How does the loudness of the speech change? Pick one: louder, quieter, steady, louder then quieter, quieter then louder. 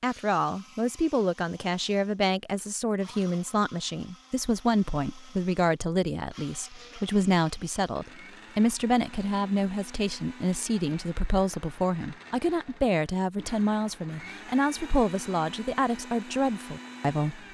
steady.